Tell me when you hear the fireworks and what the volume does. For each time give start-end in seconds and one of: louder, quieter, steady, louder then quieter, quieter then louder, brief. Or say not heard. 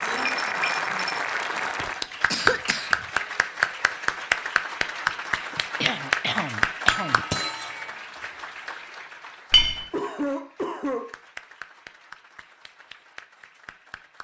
not heard.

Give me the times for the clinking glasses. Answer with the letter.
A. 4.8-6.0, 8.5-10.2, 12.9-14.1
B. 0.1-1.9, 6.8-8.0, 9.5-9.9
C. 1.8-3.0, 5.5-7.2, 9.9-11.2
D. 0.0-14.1
B.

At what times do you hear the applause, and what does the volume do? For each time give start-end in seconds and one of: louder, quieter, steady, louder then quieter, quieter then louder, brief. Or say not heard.
0.0-14.1 quieter.